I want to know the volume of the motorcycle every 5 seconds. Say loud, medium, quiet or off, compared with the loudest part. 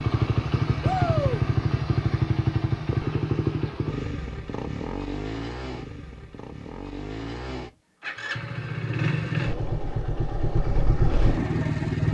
loud, medium, loud.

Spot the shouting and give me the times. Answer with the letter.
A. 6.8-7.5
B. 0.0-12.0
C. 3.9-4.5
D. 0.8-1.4
D.